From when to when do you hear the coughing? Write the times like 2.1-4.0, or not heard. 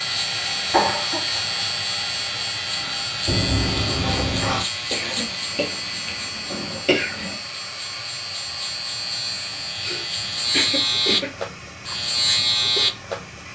0.7-1.4, 4.9-7.3, 9.7-11.3.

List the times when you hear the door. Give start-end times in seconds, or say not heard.
3.2-4.7.